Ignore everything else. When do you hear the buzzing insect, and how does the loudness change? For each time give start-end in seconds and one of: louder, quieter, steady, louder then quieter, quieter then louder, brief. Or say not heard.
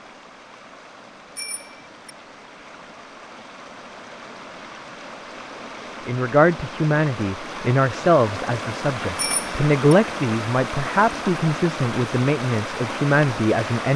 not heard.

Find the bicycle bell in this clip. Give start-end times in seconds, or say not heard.
1.4-2.1, 9.2-9.9.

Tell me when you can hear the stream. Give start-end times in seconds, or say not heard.
0.0-13.9.